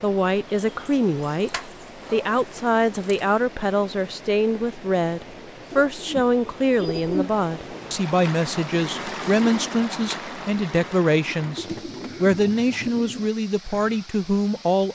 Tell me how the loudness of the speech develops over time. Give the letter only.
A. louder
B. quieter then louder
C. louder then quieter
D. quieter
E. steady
E.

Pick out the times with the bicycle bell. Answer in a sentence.
The bicycle bell can't be heard in this clip.